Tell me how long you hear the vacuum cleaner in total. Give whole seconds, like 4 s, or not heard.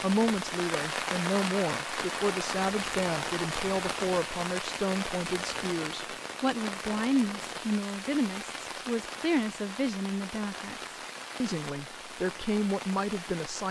not heard.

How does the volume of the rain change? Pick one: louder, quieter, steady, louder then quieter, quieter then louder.
quieter.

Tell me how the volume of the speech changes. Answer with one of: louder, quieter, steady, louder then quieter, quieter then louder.
steady.